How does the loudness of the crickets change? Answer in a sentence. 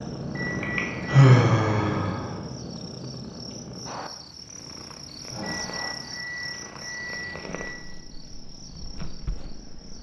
The volume of the crickets goes up, then down.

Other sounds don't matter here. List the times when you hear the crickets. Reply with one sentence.
You can hear the crickets from 0.0 to 9.9 s.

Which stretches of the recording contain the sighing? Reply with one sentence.
You can hear the sighing from 0.6 to 2.4 s and from 5.2 to 6.2 s.